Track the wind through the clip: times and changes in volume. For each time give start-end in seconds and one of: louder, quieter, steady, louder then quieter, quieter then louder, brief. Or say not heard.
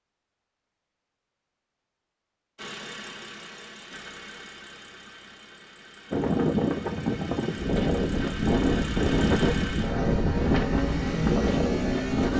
6.1-12.3 steady.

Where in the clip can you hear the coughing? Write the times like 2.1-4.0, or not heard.
not heard.